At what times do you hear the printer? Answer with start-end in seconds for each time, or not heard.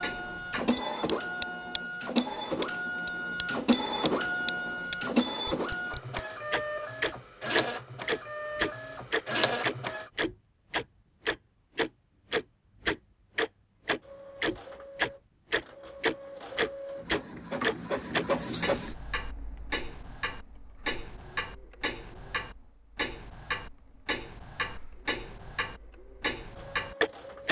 0.0-10.1, 14.0-27.4.